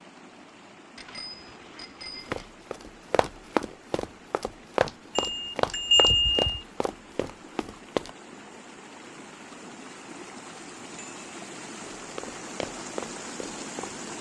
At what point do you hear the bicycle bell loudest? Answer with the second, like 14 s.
6 s.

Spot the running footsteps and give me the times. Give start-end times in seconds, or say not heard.
2.3-8.1, 11.8-14.1.